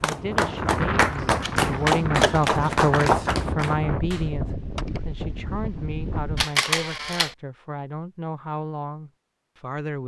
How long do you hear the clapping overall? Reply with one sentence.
The clapping can be heard for 5 seconds in total.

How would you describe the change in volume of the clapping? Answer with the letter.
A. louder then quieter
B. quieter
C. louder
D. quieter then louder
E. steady
B.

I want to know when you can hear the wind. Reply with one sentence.
You can hear the wind from 0.0 to 6.5 s.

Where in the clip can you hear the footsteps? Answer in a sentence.
You can't hear the footsteps here.